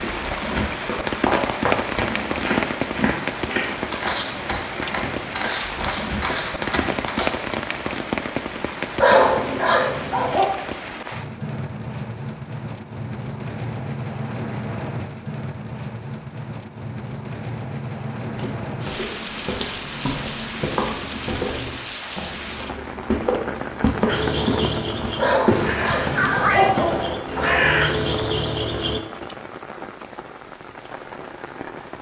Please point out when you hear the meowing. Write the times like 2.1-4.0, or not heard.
25.5-26.8.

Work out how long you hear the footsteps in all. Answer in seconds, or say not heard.
16 s.